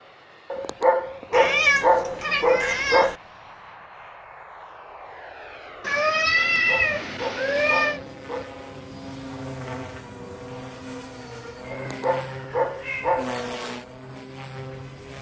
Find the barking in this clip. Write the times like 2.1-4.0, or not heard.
0.5-3.1, 6.5-8.6, 11.7-13.4.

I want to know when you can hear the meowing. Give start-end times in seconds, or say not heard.
1.3-3.1, 5.8-8.0, 11.8-13.2.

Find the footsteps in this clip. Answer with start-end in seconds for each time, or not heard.
not heard.